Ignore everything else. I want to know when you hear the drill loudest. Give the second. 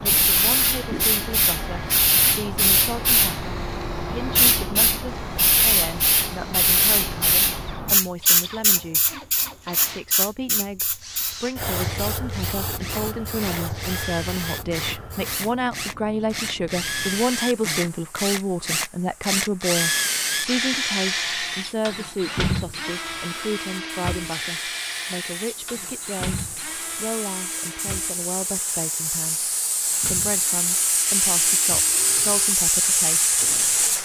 20 s.